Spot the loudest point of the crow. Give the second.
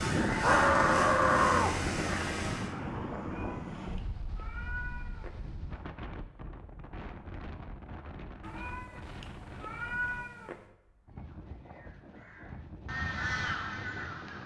1 s.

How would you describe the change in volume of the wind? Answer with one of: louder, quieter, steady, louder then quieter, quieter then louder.
quieter.